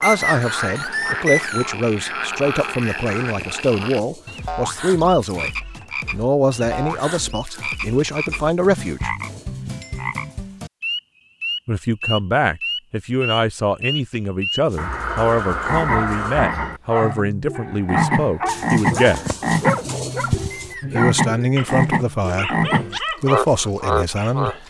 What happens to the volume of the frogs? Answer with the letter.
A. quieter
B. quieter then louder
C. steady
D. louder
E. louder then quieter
D.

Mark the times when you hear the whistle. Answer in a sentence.
You can hear the whistle from 0.0 to 1.7 s and from 20.5 to 21.6 s.